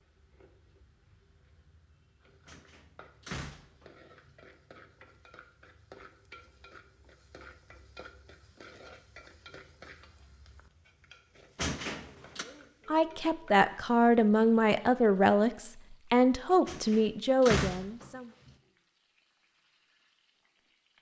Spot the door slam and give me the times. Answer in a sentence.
The door slam can be heard from 2.5 to 3.9 s, from 11.6 to 12.4 s and from 16.6 to 18.1 s.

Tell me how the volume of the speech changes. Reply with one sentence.
The volume of the speech stays about the same.